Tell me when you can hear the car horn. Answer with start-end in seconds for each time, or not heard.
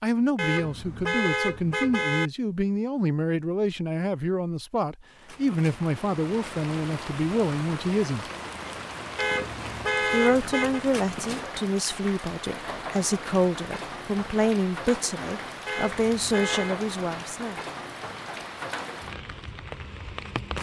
0.3-2.3, 9.2-10.8, 15.7-16.8.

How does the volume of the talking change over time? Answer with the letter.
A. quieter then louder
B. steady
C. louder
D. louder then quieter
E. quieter
B.